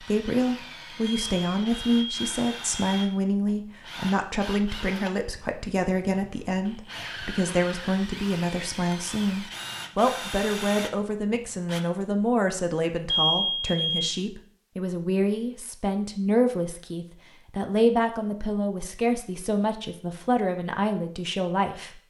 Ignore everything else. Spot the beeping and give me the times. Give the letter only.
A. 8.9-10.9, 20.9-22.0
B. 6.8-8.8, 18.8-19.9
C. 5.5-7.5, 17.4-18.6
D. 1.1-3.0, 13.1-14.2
D.